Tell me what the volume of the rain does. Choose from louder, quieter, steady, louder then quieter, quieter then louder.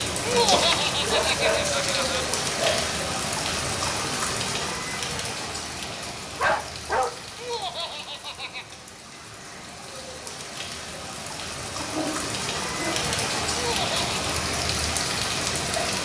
quieter then louder.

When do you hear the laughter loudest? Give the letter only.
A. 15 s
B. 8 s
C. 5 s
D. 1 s
D.